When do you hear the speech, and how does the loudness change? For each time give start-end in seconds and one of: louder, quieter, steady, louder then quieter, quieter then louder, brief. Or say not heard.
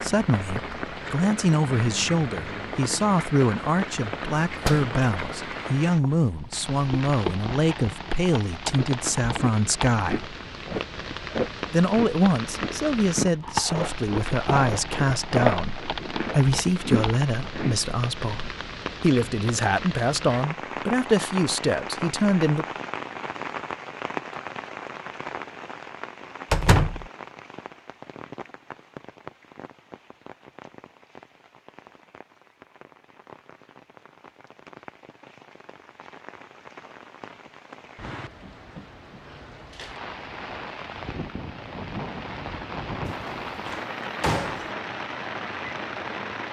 0.0-10.3 steady
11.7-22.6 steady.